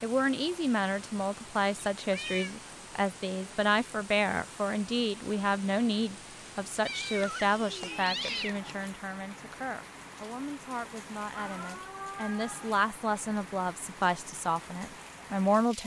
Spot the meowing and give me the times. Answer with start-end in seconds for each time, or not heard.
2.1-2.5, 6.8-8.7, 11.2-12.8.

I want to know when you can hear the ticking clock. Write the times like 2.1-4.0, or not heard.
not heard.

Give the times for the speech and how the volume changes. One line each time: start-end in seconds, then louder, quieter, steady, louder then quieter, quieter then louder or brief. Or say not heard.
0.0-15.8 quieter then louder.